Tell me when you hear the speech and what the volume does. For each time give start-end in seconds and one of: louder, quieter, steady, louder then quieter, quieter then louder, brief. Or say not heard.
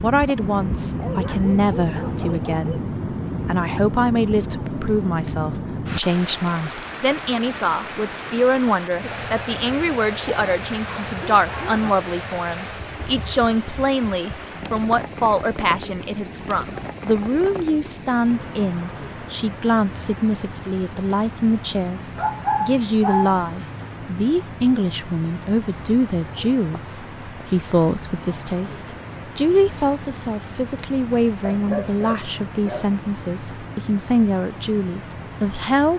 0.0-35.9 steady.